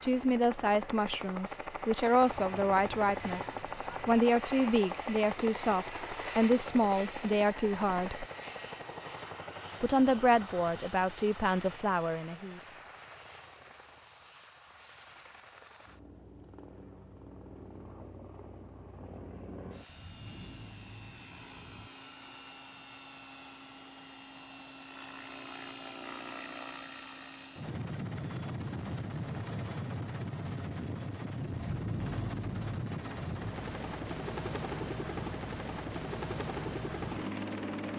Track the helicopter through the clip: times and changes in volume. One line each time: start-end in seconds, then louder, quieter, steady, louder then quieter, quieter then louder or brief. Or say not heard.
0.0-37.9 quieter then louder.